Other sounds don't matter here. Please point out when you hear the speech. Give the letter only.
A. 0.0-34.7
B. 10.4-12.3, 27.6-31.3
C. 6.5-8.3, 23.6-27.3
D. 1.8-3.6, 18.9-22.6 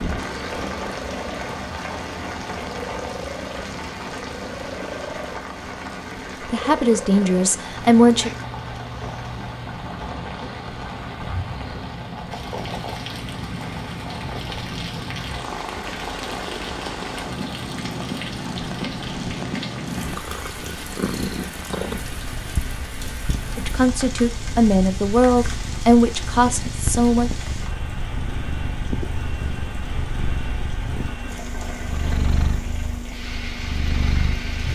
C.